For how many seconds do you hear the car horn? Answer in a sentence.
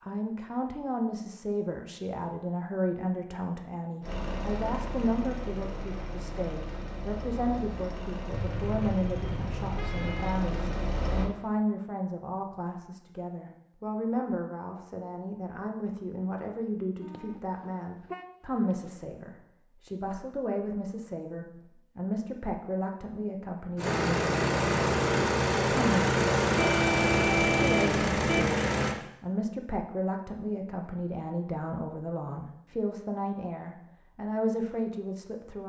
You can hear the car horn for 6 seconds altogether.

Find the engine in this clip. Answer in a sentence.
You can hear the engine from 4.0 to 11.3 s and from 23.8 to 28.9 s.